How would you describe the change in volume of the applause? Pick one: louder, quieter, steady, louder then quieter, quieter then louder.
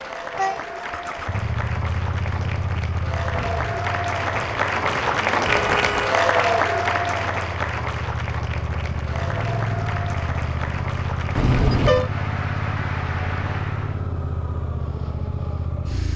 louder then quieter.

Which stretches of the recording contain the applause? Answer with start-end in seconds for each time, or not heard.
0.0-14.1.